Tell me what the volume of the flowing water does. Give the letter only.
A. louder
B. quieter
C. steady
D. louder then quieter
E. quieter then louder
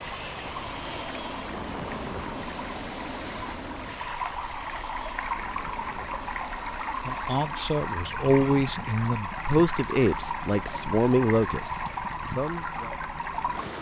A.